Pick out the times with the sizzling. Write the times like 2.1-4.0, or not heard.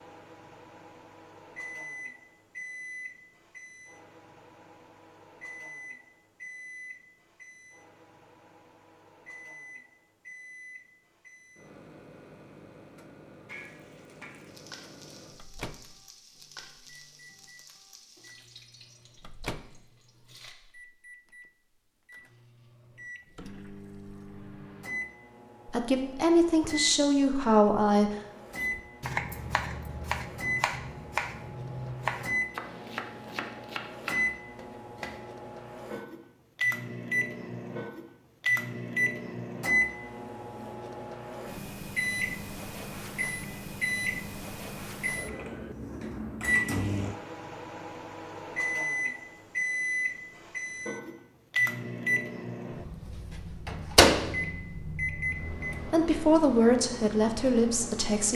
13.4-20.6.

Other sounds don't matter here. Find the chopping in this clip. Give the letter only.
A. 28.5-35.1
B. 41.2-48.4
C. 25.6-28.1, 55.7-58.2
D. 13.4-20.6
A.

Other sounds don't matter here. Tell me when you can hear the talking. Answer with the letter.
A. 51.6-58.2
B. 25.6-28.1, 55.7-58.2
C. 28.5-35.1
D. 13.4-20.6
B.